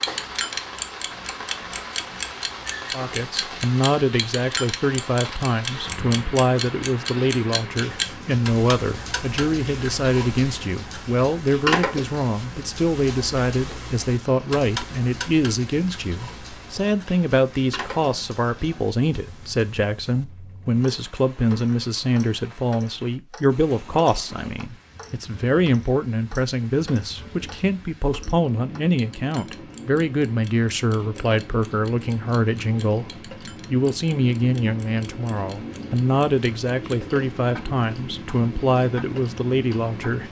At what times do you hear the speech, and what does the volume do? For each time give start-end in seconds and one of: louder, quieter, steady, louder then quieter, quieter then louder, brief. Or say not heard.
2.9-40.2 steady.